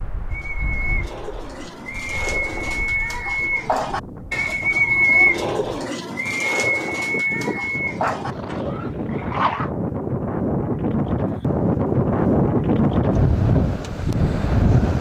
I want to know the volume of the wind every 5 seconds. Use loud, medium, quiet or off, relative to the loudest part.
quiet, medium, loud.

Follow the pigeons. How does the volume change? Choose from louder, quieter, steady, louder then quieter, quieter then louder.
louder then quieter.